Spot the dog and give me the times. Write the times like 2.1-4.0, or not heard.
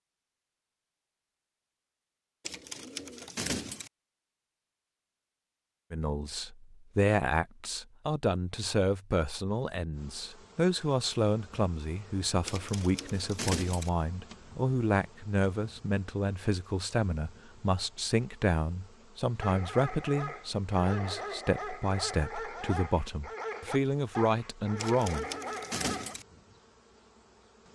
19.4-26.1.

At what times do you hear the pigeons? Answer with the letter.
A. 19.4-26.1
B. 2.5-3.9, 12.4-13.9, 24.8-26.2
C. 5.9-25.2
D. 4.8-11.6
B.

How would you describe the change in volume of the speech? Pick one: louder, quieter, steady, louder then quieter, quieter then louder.
steady.